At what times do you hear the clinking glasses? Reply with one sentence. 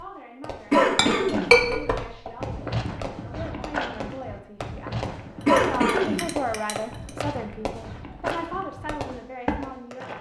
The clinking glasses can be heard from 0.8 to 2.3 s and from 5.4 to 7.2 s.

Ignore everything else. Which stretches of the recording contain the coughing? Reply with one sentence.
The coughing can be heard from 0.7 to 1.5 s and from 5.5 to 6.2 s.